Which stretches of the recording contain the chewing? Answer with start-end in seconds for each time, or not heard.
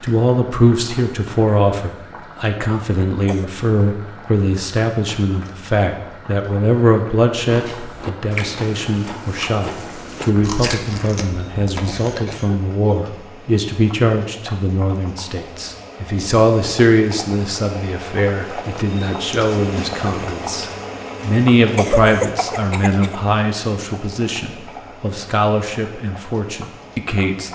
7.3-12.2.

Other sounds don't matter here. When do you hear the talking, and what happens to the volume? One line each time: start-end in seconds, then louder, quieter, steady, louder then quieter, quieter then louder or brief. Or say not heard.
0.0-27.5 steady.